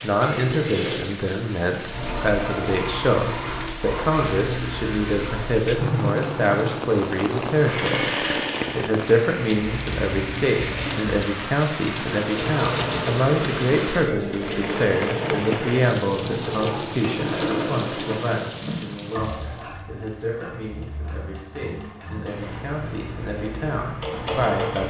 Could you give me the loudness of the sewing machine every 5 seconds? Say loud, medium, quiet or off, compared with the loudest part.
loud, loud, loud, loud, medium.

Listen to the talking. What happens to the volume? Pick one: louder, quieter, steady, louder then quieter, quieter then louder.
quieter.